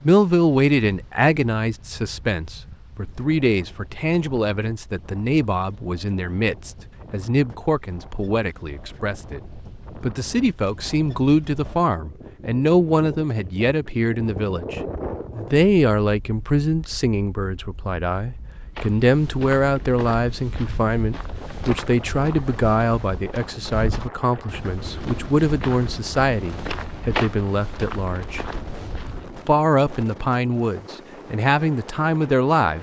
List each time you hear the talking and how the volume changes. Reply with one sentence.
The talking can be heard from 0.0 to 32.7 s, at a steady volume.